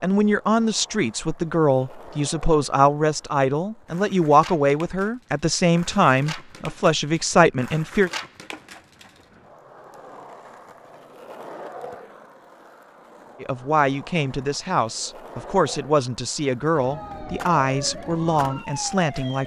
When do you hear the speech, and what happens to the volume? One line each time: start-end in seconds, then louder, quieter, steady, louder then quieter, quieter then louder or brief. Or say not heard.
0.0-8.1 steady
13.4-19.4 steady.